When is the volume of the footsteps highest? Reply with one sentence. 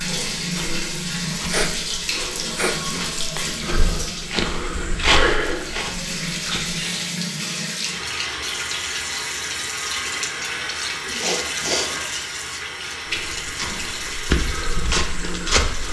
The volume of the footsteps peaks at 5 seconds.